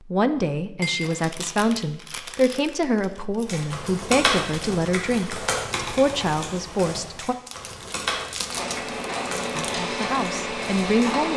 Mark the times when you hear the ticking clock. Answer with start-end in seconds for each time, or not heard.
not heard.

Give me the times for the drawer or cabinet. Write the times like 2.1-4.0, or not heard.
not heard.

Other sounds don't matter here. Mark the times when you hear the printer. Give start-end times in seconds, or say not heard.
8.4-11.3.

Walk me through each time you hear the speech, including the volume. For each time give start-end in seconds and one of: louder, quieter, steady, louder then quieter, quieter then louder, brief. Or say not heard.
0.1-7.3 steady
9.6-11.3 brief.